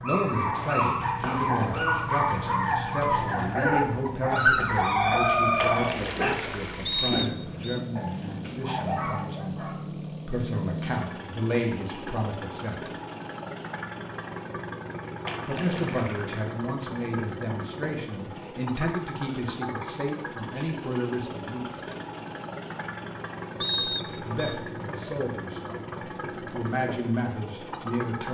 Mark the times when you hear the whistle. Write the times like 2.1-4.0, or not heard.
6.8-7.8, 23.6-24.4.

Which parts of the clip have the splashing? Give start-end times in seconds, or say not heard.
5.5-6.8, 15.2-16.5.